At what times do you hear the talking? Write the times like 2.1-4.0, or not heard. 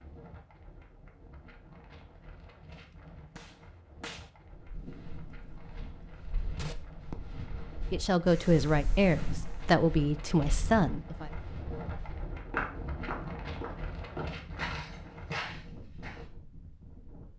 7.9-11.3.